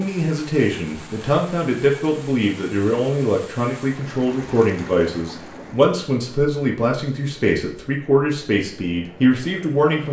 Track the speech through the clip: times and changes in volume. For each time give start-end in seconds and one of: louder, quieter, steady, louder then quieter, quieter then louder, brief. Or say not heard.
0.0-10.0 steady.